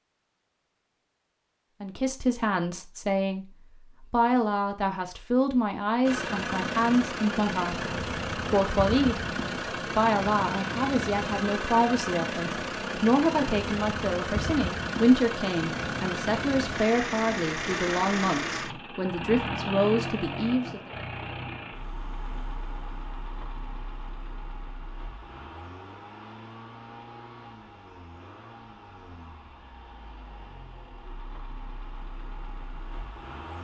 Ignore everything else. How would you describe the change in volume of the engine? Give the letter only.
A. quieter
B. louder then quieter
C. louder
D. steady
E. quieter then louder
A.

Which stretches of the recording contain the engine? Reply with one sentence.
The engine can be heard from 6.0 to 33.5 s.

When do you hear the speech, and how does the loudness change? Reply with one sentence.
The speech can be heard from 1.8 to 9.2 s, at a steady volume; and from 9.9 to 20.9 s, at a steady volume.